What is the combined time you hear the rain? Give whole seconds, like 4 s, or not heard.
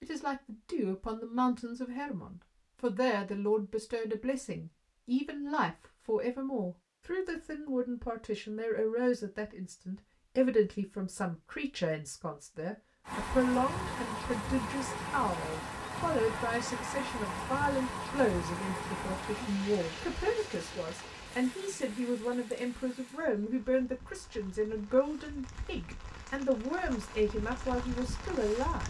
16 s.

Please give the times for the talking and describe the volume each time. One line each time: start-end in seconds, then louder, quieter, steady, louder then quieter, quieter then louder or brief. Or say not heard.
0.0-28.8 steady.